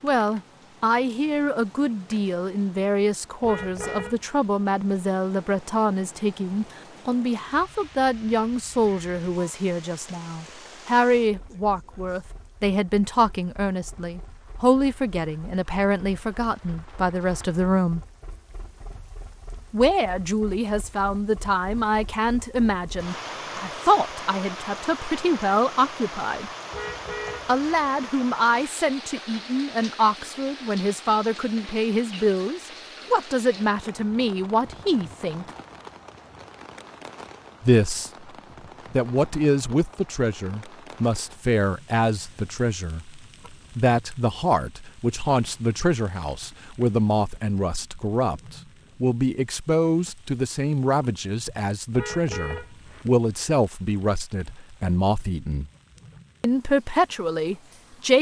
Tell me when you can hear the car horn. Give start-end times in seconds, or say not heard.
3.4-4.2, 26.7-27.9, 51.9-53.1.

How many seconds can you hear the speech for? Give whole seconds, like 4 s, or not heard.
52 s.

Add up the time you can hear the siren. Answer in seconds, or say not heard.
not heard.